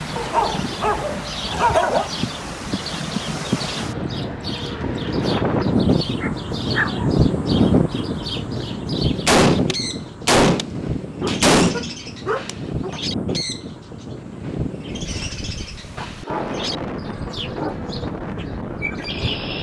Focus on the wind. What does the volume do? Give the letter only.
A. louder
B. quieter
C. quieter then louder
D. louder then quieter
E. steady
D.